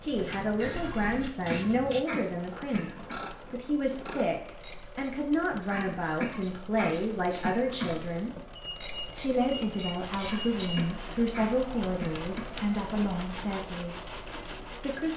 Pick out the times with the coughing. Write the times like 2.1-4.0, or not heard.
1.0-3.1, 5.7-8.0, 10.2-12.6.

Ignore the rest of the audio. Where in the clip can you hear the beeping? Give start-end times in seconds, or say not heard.
8.6-10.8.